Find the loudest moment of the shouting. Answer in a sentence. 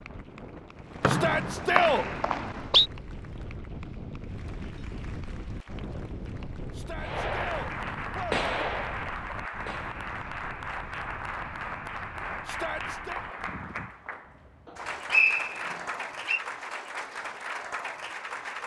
The volume of the shouting peaks at 2 seconds.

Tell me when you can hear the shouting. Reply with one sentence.
You can hear the shouting from 1.1 to 2.0 s, from 6.7 to 8.5 s and from 12.4 to 13.2 s.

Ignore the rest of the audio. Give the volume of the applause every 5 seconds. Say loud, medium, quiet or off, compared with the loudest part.
quiet, loud, loud, loud.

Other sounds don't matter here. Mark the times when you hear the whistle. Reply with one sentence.
The whistle can be heard from 1.0 to 2.9 s and from 14.7 to 16.4 s.